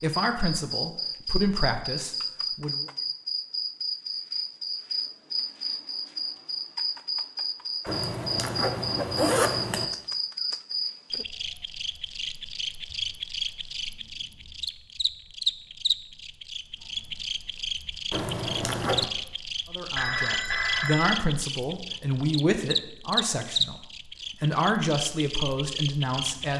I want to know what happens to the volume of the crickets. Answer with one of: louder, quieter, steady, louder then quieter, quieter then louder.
steady.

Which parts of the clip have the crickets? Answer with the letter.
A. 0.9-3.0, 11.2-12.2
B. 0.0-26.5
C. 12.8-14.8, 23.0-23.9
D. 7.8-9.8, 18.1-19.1
B.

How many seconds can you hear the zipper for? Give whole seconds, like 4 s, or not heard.
3 s.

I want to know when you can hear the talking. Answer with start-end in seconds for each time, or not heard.
0.0-2.9, 19.7-26.5.